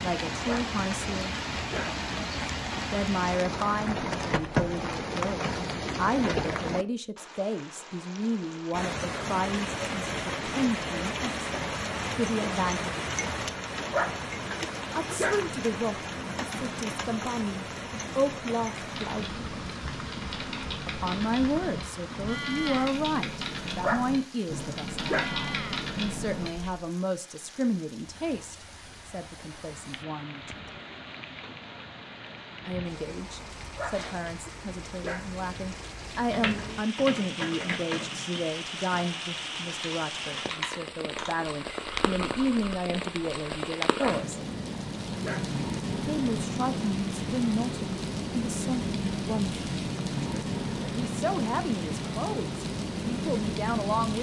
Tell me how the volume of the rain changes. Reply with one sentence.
The volume of the rain goes down, then up.